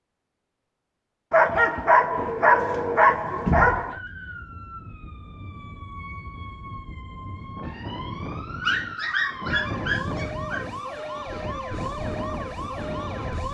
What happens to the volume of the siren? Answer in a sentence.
The volume of the siren goes up.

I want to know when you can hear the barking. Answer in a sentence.
The barking can be heard from 1.3 to 4.0 s and from 8.6 to 10.7 s.